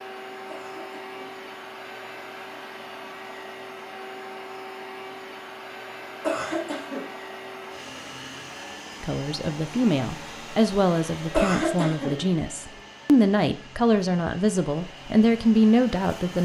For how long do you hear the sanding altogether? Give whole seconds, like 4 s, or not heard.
not heard.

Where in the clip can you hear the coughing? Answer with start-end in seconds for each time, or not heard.
0.5-1.3, 6.2-7.0, 11.3-12.2.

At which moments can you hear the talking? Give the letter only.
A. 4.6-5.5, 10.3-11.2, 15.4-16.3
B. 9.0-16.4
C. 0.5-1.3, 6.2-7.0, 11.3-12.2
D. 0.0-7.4
B.